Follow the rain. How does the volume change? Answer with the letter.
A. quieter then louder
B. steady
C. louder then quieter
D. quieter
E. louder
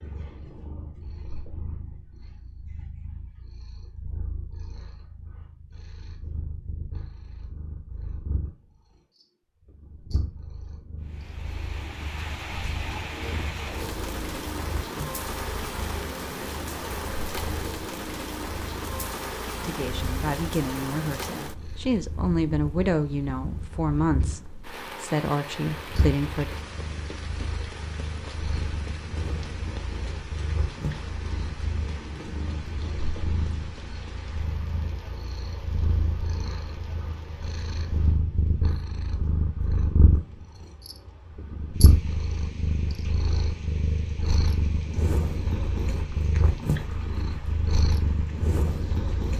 D.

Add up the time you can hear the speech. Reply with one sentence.
The speech can be heard for 7 seconds in total.